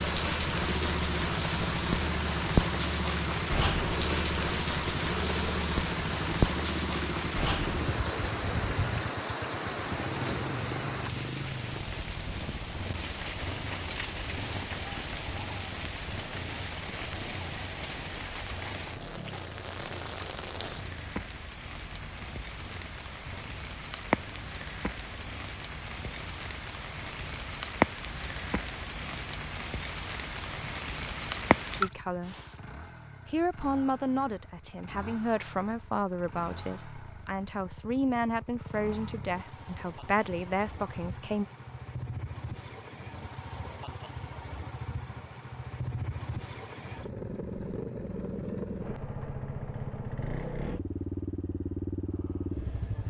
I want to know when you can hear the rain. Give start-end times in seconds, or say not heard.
0.0-32.5.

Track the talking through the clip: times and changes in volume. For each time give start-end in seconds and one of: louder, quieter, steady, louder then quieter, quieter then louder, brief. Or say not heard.
31.8-32.4 brief
33.2-41.5 steady.